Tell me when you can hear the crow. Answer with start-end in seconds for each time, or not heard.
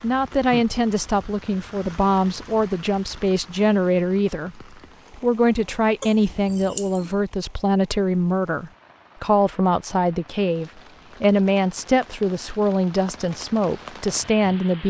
not heard.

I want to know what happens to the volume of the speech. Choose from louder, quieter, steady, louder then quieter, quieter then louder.
steady.